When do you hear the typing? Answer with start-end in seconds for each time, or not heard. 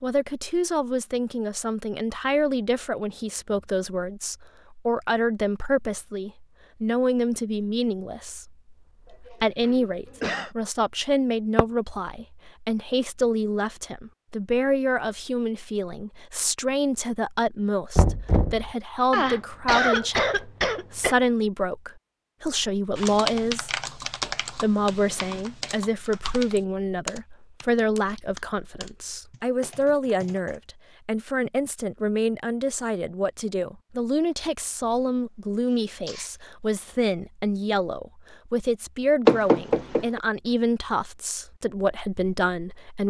22.9-30.6.